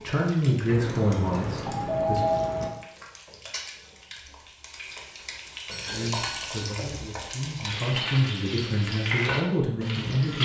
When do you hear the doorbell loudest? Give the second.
2 s.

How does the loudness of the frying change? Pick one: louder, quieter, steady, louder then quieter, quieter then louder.
louder.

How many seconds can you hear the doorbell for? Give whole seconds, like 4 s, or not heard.
3 s.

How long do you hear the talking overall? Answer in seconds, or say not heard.
7 s.